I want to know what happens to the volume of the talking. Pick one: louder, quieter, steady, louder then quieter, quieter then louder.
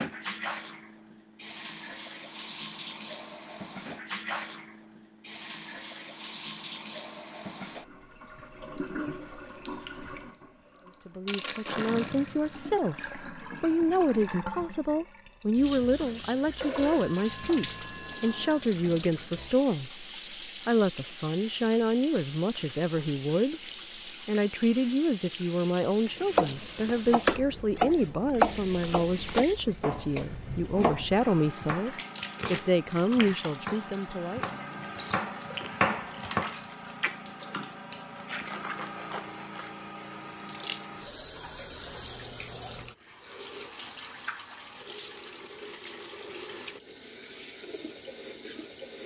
steady.